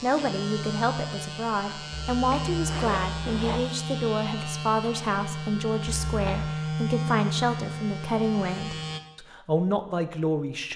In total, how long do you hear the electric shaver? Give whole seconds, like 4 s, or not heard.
9 s.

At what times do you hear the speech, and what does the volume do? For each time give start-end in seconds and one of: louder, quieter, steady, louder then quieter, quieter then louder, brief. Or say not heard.
0.0-10.7 steady.